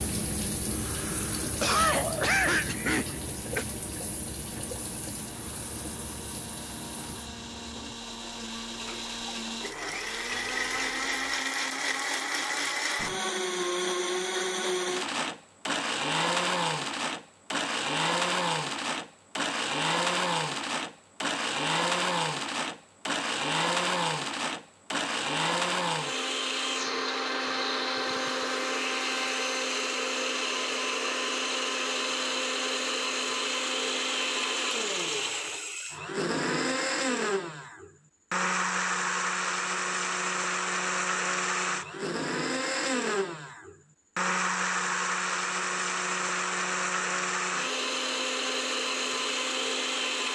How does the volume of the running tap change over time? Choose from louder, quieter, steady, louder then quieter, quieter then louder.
quieter then louder.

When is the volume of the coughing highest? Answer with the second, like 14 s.
2 s.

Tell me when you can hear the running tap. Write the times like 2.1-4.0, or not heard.
0.0-11.3.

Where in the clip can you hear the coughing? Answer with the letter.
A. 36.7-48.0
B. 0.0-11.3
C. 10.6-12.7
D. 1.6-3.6
D.